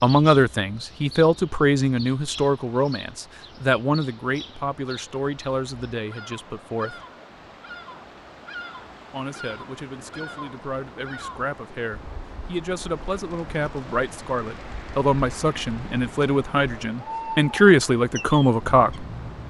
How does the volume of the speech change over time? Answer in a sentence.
The volume of the speech goes down, then up.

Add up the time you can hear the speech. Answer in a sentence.
You can hear the speech for 17 seconds altogether.